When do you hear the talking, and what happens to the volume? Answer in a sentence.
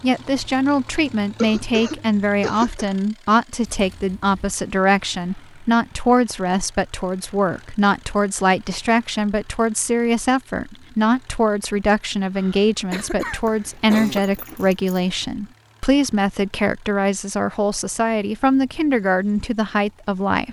The talking can be heard from 0.0 to 20.4 s, at a steady volume.